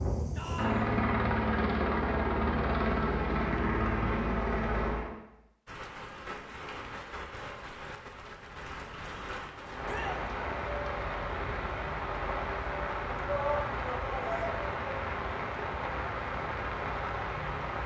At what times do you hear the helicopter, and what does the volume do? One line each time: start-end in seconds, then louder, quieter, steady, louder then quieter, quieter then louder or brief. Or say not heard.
0.0-5.1 steady.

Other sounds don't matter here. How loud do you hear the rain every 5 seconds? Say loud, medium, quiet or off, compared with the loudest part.
off, medium, loud, loud.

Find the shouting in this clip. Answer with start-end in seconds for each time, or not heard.
0.3-0.9, 9.8-10.2, 13.2-14.6.